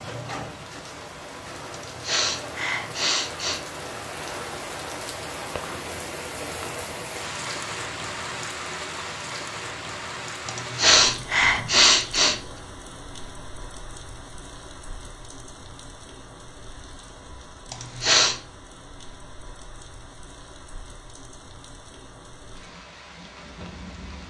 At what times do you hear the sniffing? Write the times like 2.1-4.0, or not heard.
1.7-3.6, 10.4-12.4, 17.7-18.4.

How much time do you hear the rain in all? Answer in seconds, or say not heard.
24 s.